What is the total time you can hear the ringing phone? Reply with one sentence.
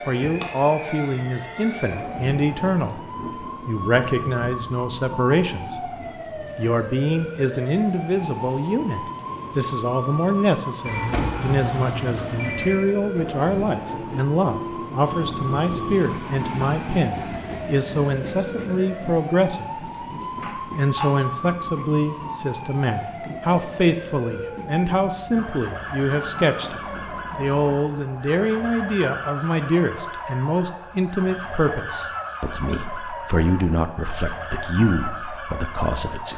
You can hear the ringing phone for 3 seconds altogether.